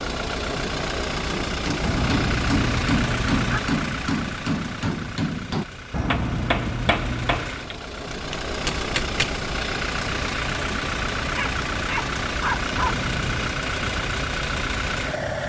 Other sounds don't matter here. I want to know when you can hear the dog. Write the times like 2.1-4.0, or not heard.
11.3-13.1.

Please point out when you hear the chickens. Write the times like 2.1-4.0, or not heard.
not heard.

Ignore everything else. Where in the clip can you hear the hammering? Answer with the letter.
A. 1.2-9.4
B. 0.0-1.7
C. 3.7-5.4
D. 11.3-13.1
A.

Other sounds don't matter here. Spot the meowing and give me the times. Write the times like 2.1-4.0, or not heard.
1.8-3.6, 5.9-7.5, 12.8-13.6.